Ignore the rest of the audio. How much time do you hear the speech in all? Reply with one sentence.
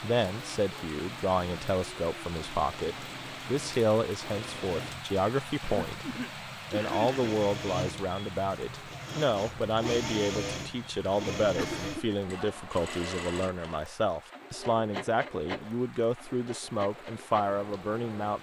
The speech can be heard for 18 seconds in total.